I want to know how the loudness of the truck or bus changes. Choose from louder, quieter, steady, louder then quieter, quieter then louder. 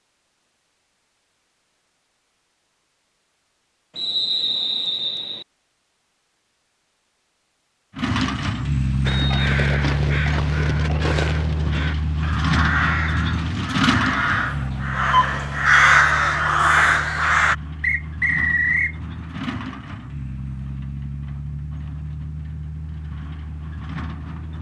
quieter.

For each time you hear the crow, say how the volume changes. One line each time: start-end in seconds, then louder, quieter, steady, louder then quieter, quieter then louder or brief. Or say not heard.
9.0-17.6 louder.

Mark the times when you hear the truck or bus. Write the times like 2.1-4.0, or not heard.
7.9-24.5.